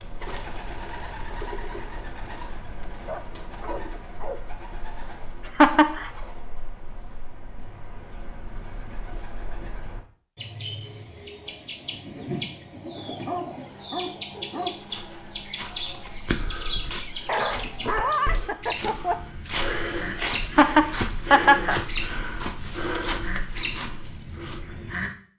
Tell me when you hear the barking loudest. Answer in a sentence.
The loudest moment of the barking is at 18 seconds.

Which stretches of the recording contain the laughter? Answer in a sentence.
You can hear the laughter from 5.5 to 6.1 s and from 20.4 to 21.8 s.